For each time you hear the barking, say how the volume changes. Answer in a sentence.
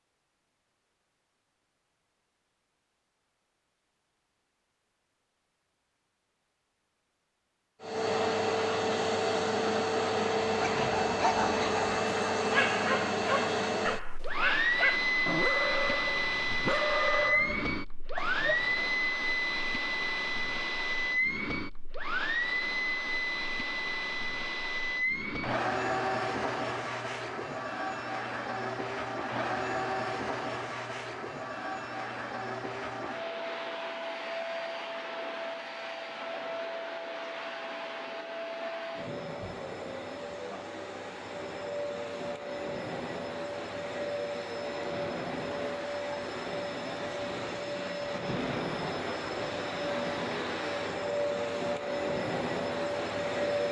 You can hear the barking from 10.6 to 18.9 s, at a steady volume.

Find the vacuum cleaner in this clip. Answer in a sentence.
The vacuum cleaner can be heard from 7.8 to 53.6 s.